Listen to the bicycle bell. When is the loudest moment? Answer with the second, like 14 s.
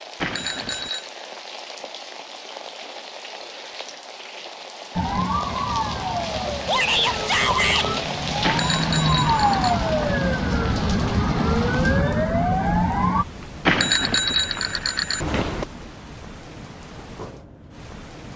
14 s.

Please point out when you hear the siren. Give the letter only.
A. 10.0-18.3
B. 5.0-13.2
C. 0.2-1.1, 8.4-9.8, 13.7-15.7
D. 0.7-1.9
B.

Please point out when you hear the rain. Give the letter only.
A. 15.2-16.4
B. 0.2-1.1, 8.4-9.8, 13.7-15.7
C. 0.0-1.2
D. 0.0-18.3
D.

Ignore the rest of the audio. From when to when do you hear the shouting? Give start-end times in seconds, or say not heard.
6.7-7.9.